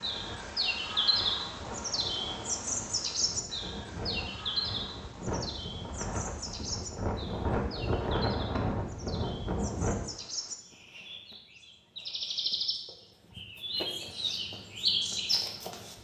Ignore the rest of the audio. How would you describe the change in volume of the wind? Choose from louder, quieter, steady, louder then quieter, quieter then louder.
louder.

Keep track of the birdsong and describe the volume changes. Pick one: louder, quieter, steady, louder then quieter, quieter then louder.
quieter then louder.